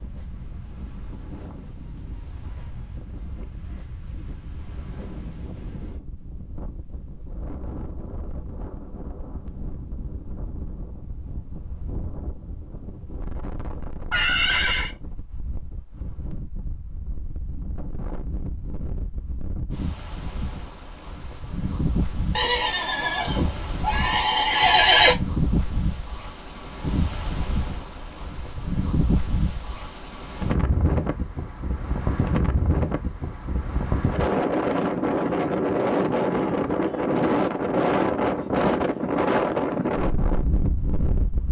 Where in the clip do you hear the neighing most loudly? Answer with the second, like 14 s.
25 s.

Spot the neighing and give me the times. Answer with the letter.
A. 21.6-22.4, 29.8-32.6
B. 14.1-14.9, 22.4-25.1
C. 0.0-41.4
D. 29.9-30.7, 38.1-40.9
B.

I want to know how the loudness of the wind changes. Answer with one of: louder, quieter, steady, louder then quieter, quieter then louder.
louder.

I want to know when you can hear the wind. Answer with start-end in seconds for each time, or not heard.
0.0-41.4.